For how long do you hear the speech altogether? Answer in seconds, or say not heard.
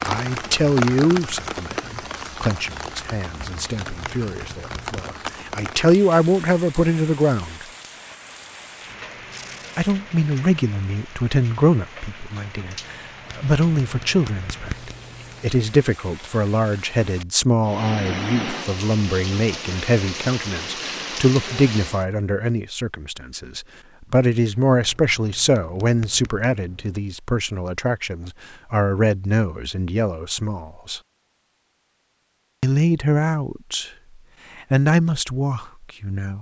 32 s.